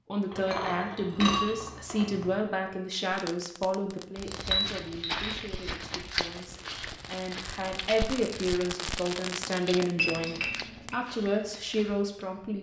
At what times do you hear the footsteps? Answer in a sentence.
You can hear the footsteps from 4.2 to 12.2 s.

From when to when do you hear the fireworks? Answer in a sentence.
The fireworks can be heard from 3.1 to 10.9 s.